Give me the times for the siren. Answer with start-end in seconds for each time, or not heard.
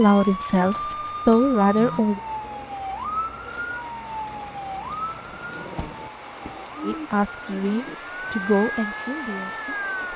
0.0-10.1.